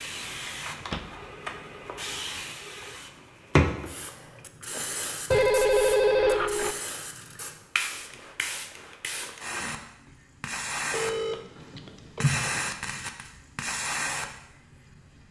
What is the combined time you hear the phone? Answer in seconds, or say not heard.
5 s.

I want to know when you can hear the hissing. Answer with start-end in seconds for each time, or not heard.
0.0-15.2.